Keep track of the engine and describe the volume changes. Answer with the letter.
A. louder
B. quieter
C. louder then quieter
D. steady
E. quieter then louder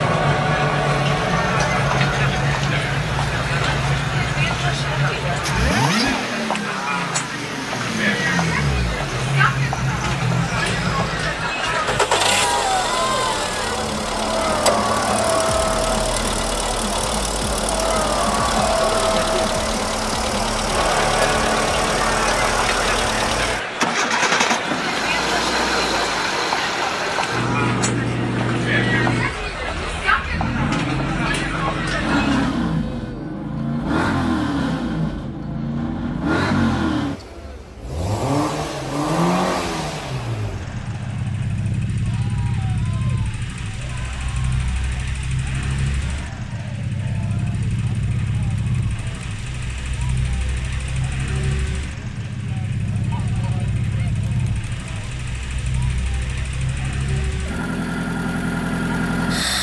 D.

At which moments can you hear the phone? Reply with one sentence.
The phone can be heard from 24.4 to 25.1 s.